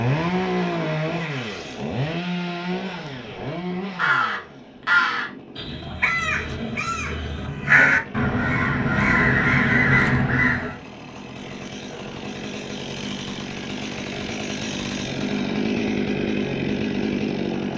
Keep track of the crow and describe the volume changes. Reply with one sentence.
The loudness of the crow goes down, then up.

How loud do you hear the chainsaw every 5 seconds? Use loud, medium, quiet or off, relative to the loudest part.
loud, quiet, medium, loud.